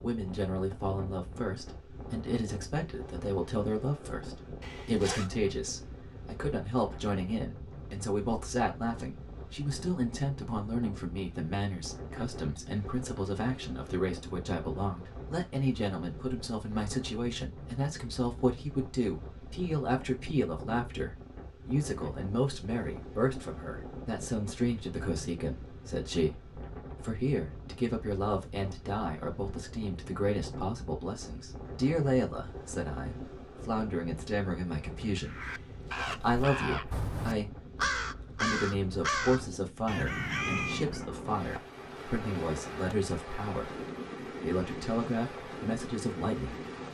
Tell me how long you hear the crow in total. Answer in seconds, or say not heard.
6 s.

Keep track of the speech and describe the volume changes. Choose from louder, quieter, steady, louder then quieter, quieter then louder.
steady.